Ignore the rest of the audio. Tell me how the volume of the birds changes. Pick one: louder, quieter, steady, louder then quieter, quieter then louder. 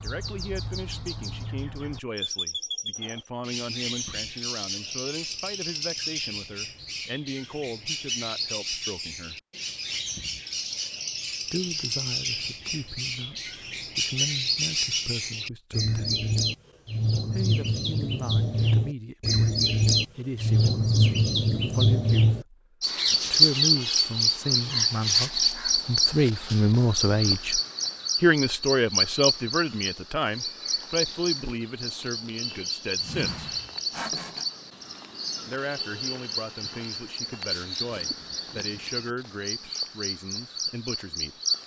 louder then quieter.